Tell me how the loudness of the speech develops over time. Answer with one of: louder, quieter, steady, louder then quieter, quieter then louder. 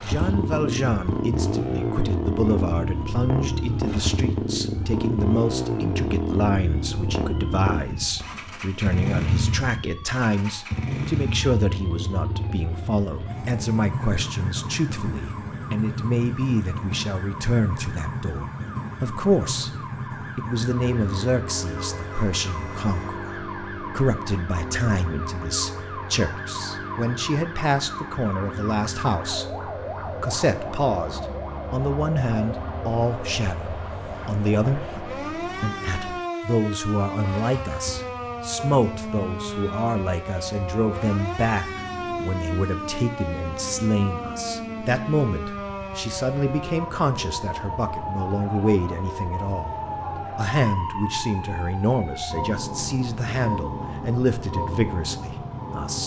steady.